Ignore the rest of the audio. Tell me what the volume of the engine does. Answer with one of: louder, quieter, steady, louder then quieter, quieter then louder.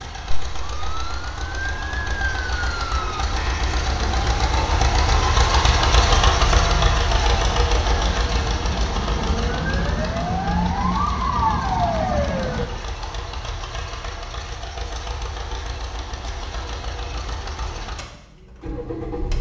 louder then quieter.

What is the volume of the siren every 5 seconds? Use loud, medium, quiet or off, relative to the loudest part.
medium, medium, loud, off.